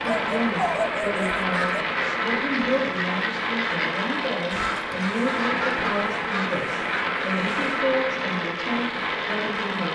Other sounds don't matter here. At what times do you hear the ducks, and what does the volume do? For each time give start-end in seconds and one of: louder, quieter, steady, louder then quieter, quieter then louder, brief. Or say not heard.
1.5-7.8 steady.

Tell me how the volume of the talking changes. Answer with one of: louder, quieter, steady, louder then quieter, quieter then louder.
steady.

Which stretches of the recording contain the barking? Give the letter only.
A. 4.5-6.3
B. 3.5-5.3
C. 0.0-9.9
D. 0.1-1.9
D.